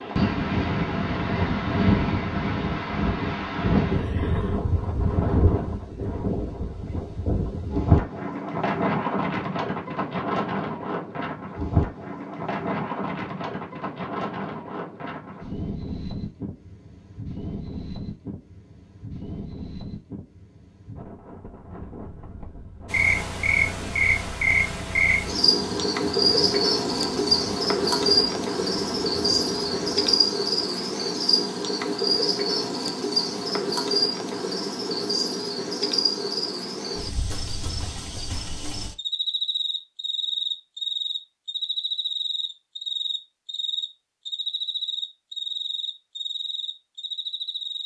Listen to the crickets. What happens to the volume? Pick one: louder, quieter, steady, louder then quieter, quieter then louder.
quieter.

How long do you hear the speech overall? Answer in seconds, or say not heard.
not heard.